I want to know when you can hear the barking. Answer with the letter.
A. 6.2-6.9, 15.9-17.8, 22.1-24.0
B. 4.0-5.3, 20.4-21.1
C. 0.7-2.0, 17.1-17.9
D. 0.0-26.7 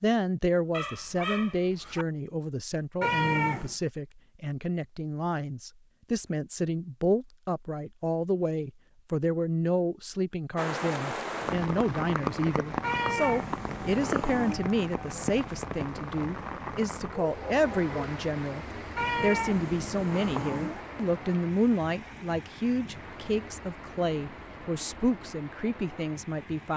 C.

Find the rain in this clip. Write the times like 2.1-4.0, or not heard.
10.6-26.7.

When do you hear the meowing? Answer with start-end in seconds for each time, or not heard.
3.0-3.8, 12.8-14.6, 18.9-20.9.